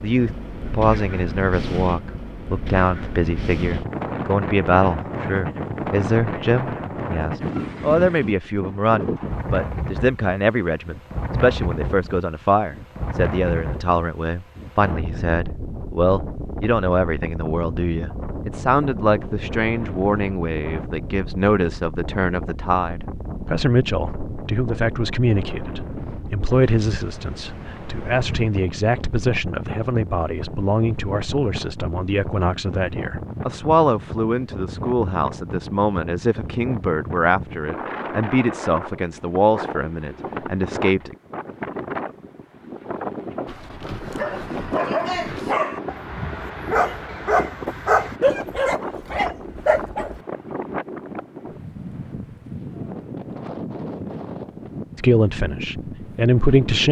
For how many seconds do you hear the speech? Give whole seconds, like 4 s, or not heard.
43 s.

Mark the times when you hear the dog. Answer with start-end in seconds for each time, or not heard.
43.5-50.2.